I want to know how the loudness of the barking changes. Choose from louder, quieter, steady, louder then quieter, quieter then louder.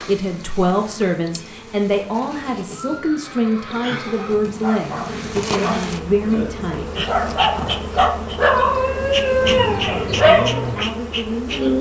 quieter then louder.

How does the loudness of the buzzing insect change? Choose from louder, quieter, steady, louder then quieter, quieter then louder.
louder.